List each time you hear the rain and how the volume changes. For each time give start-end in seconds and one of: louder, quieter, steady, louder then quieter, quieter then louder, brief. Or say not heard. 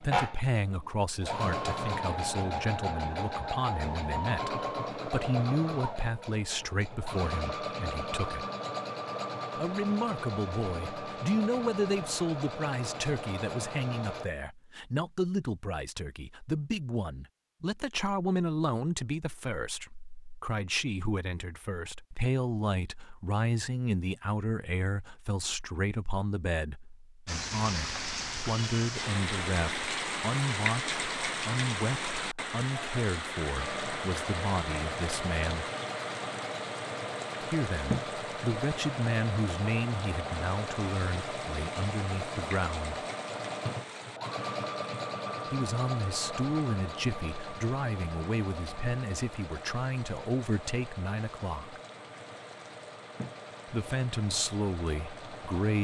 27.2-55.7 quieter.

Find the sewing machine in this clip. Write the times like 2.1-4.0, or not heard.
0.0-14.2, 33.5-55.7.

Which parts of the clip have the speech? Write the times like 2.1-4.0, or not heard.
0.0-8.4, 9.6-35.6, 37.4-43.0, 45.5-51.8, 53.6-55.7.